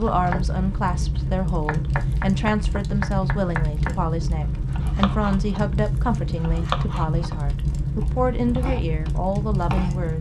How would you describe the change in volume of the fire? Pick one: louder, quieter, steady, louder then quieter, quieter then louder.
steady.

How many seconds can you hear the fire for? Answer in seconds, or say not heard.
10 s.